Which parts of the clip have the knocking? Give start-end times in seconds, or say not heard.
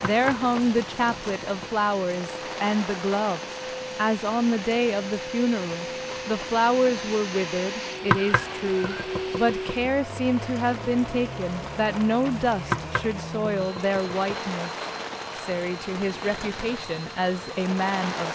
0.0-1.9, 8.1-9.9, 12.7-14.5.